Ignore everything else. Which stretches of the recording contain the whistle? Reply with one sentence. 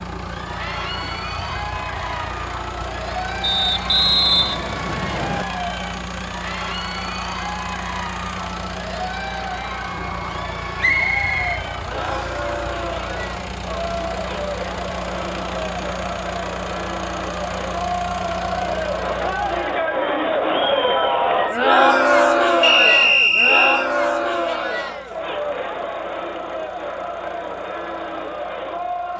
You can hear the whistle from 3.4 to 5.5 s, from 10.8 to 12.3 s and from 22.6 to 23.9 s.